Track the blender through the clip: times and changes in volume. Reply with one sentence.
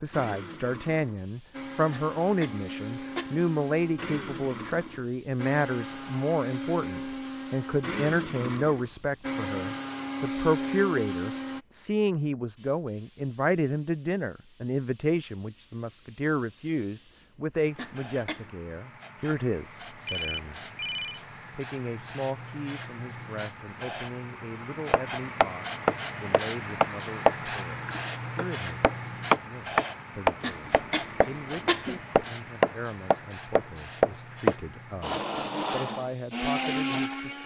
You can hear the blender from 0.0 to 11.6 s, getting louder; and briefly from 35.0 to 37.4 s.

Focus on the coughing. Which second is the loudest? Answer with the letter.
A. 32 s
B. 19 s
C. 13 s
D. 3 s
A.